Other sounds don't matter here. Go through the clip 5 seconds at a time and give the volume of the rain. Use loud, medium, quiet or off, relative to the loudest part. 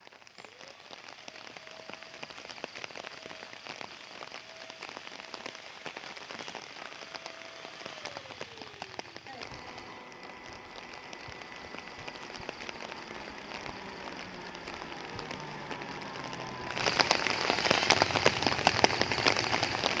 quiet, quiet, quiet, loud.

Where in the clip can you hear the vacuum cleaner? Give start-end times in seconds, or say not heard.
0.0-19.9.